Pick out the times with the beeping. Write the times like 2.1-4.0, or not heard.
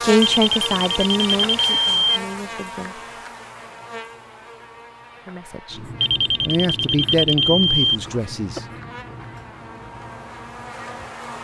0.2-2.2, 6.0-8.0.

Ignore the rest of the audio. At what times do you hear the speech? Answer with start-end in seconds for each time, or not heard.
0.0-3.0, 5.2-8.7.